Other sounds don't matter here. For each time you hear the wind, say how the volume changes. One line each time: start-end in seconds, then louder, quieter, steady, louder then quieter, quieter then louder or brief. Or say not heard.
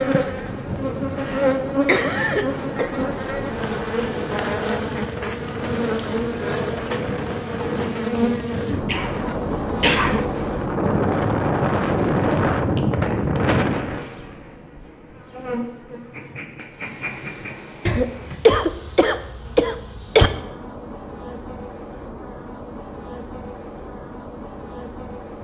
0.0-14.1 louder.